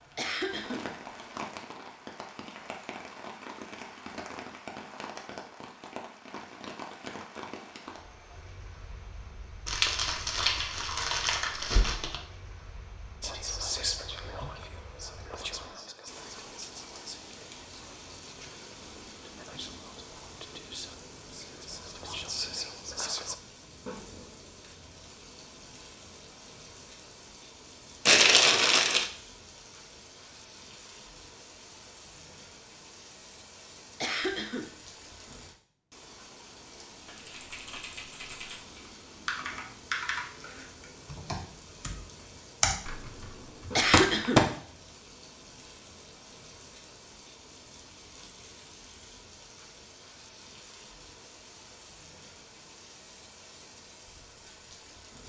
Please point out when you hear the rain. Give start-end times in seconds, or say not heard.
0.0-55.2.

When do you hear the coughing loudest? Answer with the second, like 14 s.
44 s.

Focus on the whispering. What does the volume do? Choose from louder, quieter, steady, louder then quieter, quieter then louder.
quieter then louder.